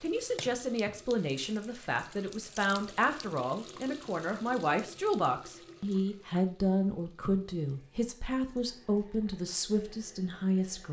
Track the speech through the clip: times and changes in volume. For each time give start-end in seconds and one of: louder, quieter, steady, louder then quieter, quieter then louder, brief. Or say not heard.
0.0-10.8 steady.